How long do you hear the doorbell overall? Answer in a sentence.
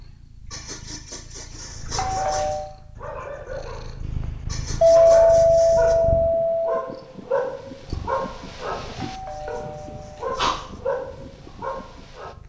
You can hear the doorbell for 4 seconds altogether.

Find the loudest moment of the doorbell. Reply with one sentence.
The loudest moment of the doorbell is at 5 seconds.